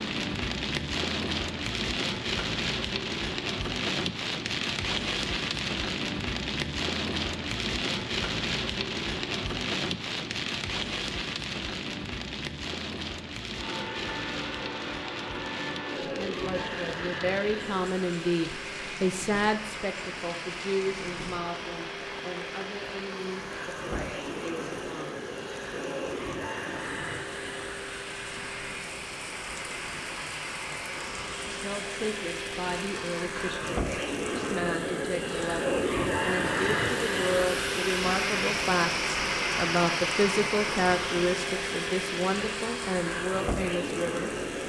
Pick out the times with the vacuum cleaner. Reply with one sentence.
The vacuum cleaner can be heard from 13.6 to 44.6 s.